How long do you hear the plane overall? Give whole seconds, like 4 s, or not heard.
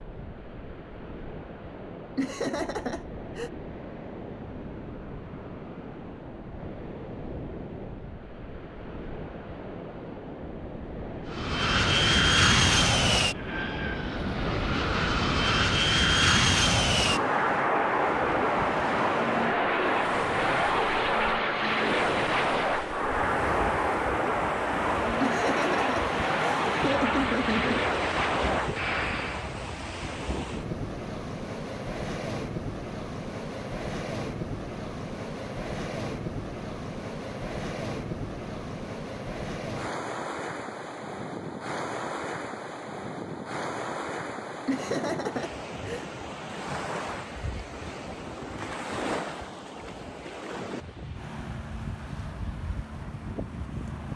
18 s.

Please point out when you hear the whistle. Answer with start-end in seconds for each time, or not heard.
not heard.